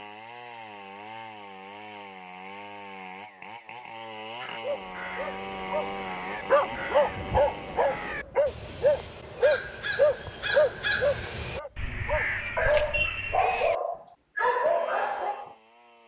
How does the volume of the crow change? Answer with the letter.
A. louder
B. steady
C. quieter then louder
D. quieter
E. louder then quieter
A.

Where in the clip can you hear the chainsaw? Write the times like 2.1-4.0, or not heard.
0.0-8.2, 14.6-16.0.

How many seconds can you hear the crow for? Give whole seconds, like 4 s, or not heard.
9 s.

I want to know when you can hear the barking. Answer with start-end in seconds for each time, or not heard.
4.6-15.5.